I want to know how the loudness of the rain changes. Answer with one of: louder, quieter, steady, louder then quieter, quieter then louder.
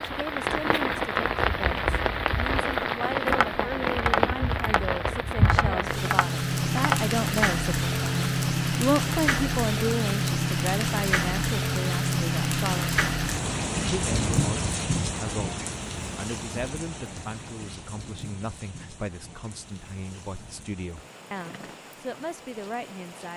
quieter.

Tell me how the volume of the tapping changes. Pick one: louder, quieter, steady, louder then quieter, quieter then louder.
quieter then louder.